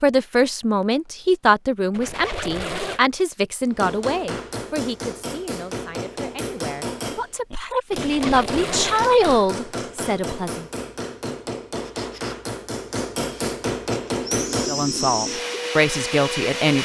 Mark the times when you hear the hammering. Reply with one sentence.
The hammering can be heard from 3.6 to 14.8 s.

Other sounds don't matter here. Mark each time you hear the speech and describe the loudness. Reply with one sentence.
The speech can be heard from 0.0 to 10.7 s, getting quieter then louder; and briefly from 14.7 to 16.8 s.